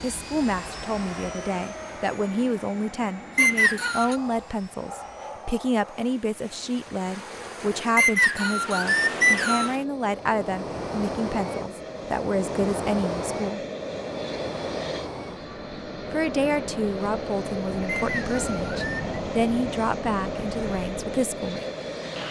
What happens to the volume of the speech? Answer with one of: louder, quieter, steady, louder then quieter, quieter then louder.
steady.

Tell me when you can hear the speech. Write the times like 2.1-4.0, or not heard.
0.0-13.6, 16.1-21.6.